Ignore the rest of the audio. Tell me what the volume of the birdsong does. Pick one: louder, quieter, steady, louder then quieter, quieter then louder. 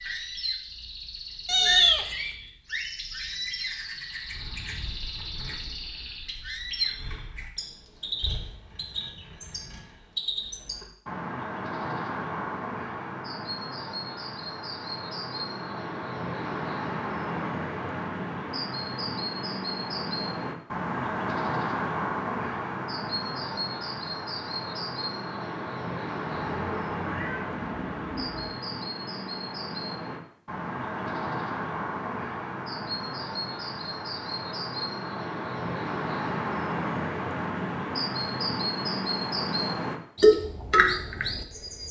louder.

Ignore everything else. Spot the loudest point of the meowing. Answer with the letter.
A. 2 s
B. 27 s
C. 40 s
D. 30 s
A.